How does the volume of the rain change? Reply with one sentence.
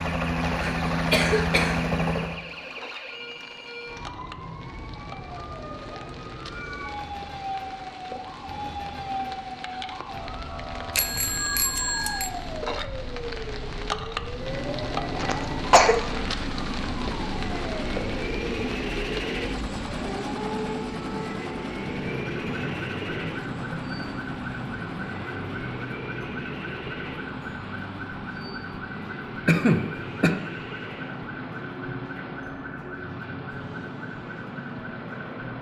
The loudness of the rain goes up.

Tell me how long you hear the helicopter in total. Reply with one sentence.
You can hear the helicopter for 24 seconds altogether.